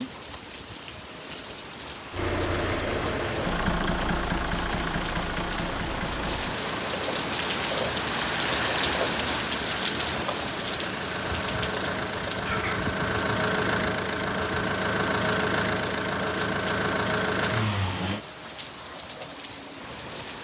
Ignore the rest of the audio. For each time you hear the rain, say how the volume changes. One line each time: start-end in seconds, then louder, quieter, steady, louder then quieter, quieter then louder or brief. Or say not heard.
0.0-20.3 louder then quieter.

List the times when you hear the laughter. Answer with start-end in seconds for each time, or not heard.
12.4-12.9.